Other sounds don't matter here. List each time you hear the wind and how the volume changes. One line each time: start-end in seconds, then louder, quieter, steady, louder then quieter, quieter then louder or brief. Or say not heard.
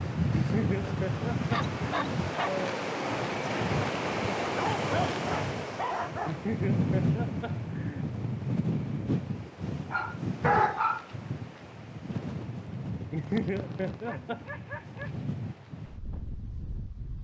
0.0-17.1 quieter.